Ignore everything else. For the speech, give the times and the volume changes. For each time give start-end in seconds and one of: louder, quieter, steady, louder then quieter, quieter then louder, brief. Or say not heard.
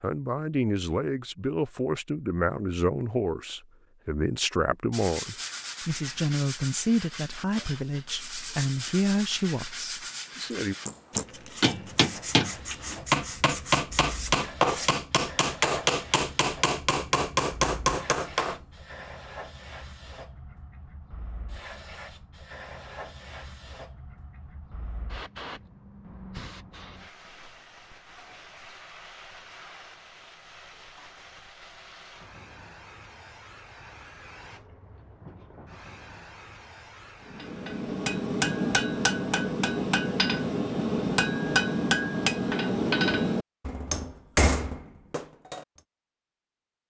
0.0-10.8 steady.